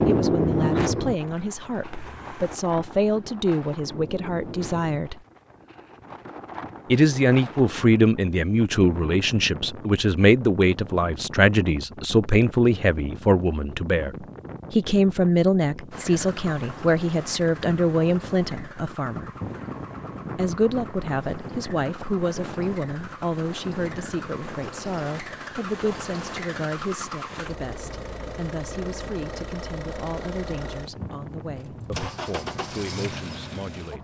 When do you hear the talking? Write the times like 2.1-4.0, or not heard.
0.0-5.2, 6.9-19.3, 20.4-33.9.